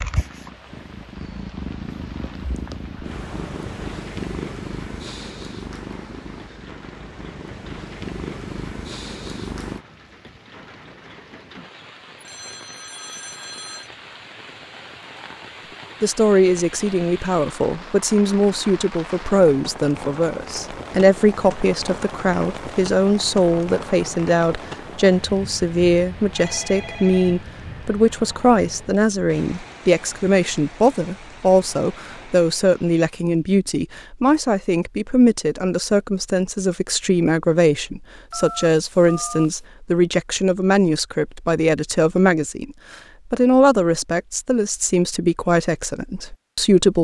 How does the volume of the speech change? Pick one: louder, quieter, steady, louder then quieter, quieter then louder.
steady.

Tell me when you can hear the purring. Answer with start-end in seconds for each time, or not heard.
0.0-9.8.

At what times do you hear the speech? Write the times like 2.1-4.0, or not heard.
16.0-46.9.